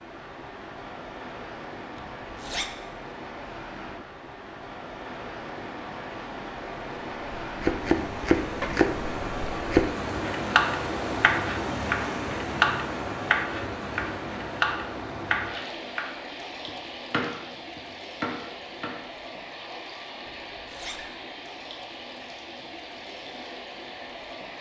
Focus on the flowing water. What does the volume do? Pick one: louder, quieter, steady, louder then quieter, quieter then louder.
louder then quieter.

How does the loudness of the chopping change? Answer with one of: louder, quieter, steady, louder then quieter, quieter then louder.
quieter.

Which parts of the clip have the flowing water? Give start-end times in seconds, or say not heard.
0.0-24.5.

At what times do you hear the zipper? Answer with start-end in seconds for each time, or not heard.
1.9-2.7, 20.2-21.1.